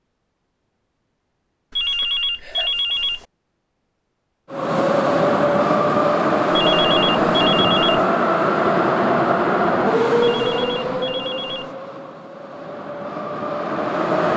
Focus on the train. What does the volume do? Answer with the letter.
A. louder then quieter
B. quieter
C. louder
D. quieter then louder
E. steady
B.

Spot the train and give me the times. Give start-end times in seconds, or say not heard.
4.5-14.3.